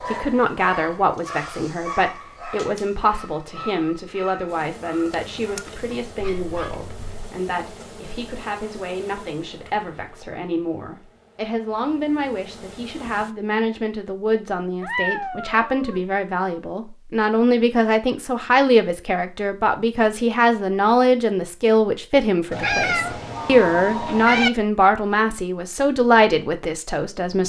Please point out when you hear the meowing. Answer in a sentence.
You can hear the meowing from 6.2 to 7.3 s, from 14.8 to 16.0 s and from 22.5 to 24.5 s.